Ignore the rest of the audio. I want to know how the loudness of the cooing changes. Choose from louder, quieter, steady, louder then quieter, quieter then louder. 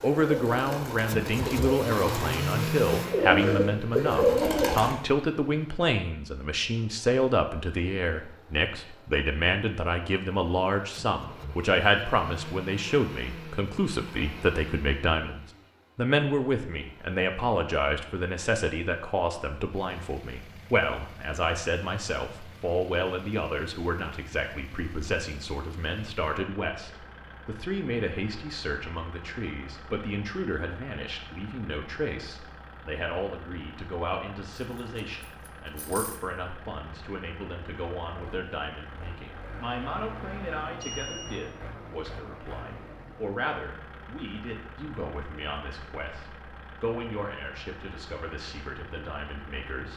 louder.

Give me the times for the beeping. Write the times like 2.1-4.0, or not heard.
40.8-41.4.